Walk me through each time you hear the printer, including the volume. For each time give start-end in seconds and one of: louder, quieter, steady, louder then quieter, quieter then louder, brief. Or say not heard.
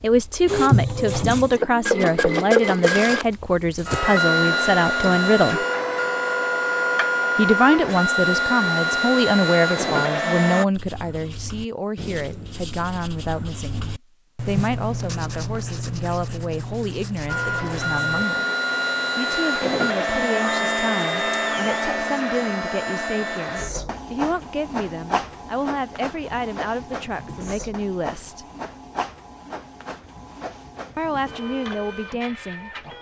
0.0-10.7 steady
17.2-32.9 quieter.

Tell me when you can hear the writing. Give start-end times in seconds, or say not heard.
10.7-18.2.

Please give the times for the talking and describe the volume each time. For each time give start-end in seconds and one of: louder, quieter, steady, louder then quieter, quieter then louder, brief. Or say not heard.
0.0-5.7 steady
7.3-18.4 quieter
19.1-28.4 steady
30.9-32.9 brief.